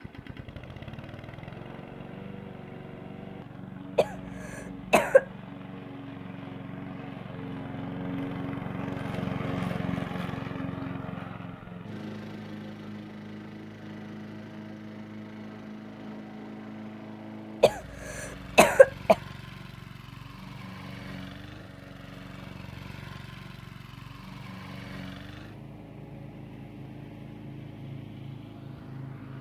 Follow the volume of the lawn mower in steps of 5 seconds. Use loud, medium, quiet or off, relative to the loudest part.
medium, loud, loud, medium, medium, medium.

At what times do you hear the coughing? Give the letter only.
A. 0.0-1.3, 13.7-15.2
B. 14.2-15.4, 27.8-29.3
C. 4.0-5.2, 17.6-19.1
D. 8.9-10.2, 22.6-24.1
C.